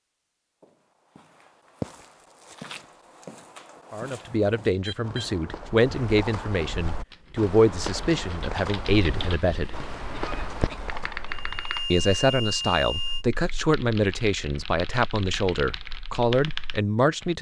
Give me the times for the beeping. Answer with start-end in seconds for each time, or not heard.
4.7-5.9, 11.2-13.2.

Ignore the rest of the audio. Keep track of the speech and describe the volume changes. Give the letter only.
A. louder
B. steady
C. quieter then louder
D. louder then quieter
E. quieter
B.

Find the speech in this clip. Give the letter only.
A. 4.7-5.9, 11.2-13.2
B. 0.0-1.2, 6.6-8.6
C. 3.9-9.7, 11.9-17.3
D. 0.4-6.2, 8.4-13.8
C.